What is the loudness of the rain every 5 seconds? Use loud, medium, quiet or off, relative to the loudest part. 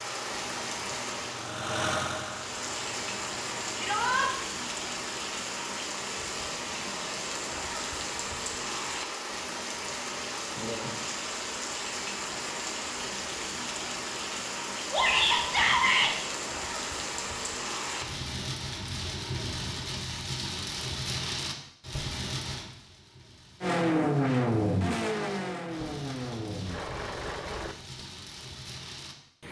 loud, loud, loud, loud, loud, medium.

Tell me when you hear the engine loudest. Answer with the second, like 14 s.
24 s.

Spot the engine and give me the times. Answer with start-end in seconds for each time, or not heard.
0.0-4.2, 23.6-28.1.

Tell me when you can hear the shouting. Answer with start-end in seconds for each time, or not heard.
3.8-4.2, 14.9-16.1.